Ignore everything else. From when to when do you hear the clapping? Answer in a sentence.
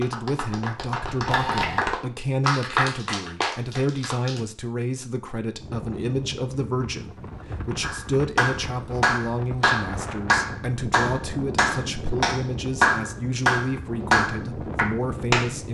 You can hear the clapping from 0.0 to 4.5 s and from 7.8 to 15.6 s.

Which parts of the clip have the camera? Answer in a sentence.
The camera can be heard from 1.1 to 1.9 s.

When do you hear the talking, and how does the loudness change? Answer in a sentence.
You can hear the talking from 0.0 to 15.6 s, at a steady volume.